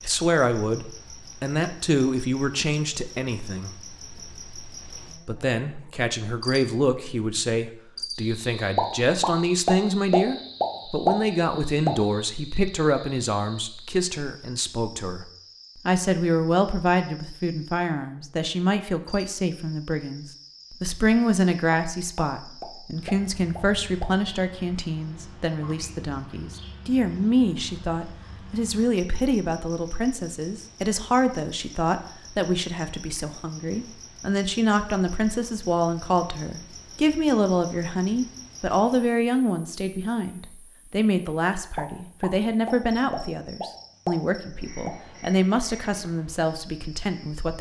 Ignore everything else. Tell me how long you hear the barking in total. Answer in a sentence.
The barking can't be heard in this clip.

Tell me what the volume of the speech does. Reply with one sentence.
The volume of the speech stays about the same.